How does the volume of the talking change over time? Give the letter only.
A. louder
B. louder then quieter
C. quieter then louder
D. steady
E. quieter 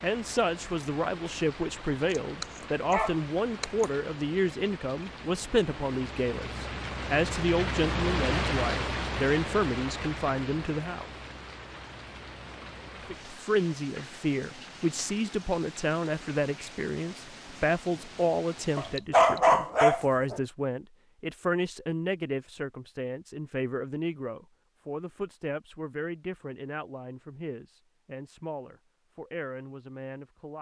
E.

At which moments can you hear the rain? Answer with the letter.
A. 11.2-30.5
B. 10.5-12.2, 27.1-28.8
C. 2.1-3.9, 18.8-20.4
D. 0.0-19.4
D.